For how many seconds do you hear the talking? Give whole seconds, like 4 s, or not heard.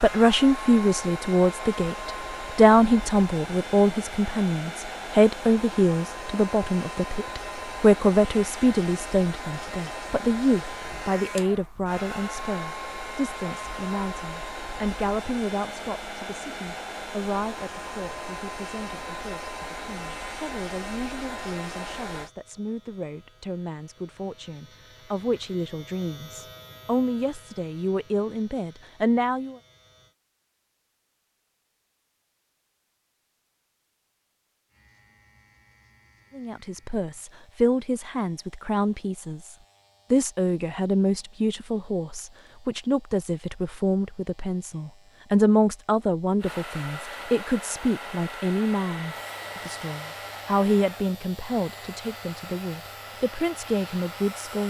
48 s.